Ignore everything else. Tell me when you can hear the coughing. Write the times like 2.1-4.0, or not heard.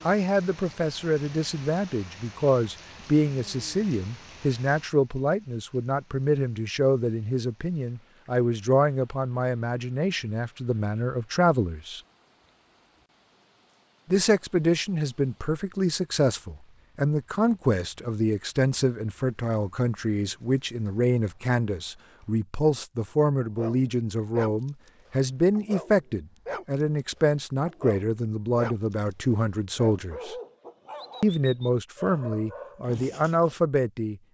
not heard.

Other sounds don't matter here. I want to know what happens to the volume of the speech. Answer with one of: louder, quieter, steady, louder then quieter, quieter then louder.
steady.